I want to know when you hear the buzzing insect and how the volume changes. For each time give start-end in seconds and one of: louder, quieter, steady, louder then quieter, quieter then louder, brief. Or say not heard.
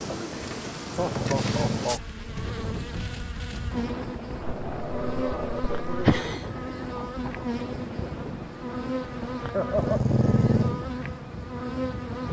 0.0-12.2 steady.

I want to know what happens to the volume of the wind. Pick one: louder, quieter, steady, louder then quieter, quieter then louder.
steady.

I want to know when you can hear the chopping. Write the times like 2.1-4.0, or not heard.
not heard.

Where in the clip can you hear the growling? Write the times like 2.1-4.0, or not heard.
0.9-1.9, 4.4-6.3, 9.8-10.8.